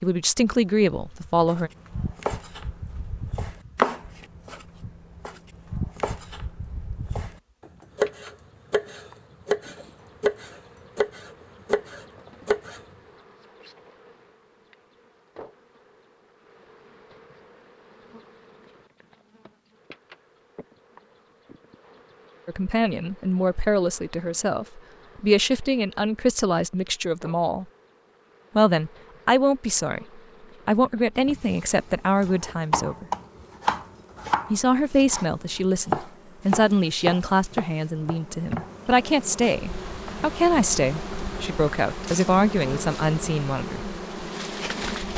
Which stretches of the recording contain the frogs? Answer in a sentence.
The frogs can't be heard in this clip.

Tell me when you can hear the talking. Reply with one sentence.
The talking can be heard from 0.0 to 1.7 s, from 22.4 to 27.6 s, from 28.6 to 33.0 s and from 34.5 to 43.8 s.